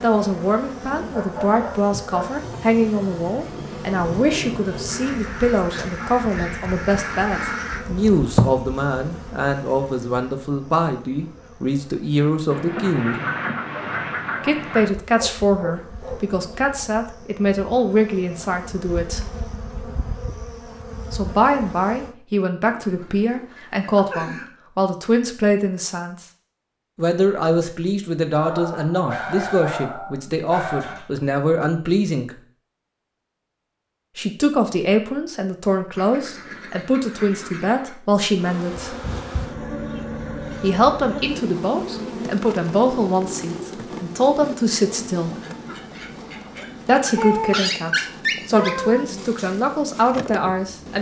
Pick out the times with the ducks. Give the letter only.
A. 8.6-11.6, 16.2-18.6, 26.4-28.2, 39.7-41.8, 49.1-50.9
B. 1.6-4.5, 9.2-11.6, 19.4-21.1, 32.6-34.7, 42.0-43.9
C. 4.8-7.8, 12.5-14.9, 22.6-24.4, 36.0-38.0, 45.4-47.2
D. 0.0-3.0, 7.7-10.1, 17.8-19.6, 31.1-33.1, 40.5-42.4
C.